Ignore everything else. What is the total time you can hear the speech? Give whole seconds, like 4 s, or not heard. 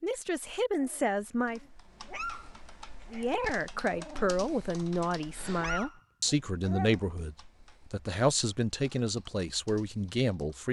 9 s.